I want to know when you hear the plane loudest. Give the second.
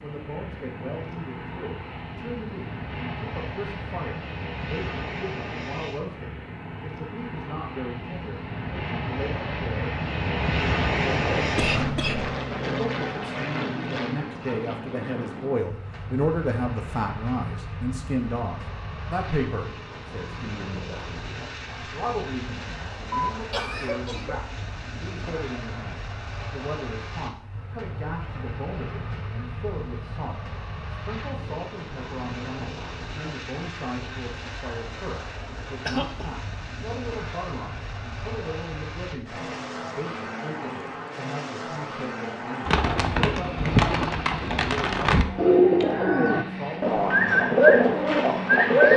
11 s.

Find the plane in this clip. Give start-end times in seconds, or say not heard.
0.0-48.9.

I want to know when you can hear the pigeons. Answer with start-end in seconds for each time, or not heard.
42.6-48.9.